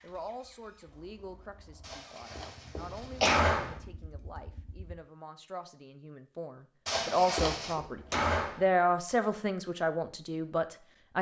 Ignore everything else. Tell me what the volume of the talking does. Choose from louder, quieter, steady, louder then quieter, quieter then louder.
louder.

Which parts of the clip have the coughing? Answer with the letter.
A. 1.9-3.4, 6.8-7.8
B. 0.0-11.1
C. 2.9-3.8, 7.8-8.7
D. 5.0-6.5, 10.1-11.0
A.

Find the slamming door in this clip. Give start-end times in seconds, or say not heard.
2.9-3.8, 7.8-8.7.